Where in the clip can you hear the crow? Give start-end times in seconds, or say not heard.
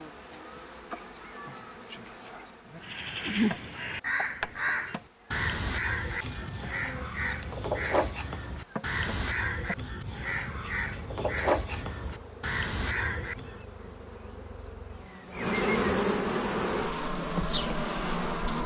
2.8-13.7.